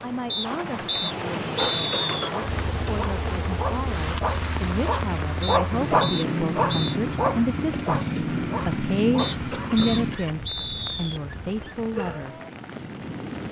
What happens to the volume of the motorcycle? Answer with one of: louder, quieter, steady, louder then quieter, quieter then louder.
louder.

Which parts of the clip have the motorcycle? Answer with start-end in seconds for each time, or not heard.
2.4-10.2.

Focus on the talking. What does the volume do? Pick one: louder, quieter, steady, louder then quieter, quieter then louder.
louder.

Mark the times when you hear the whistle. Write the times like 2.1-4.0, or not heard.
0.3-2.3, 5.4-7.0, 9.2-11.2.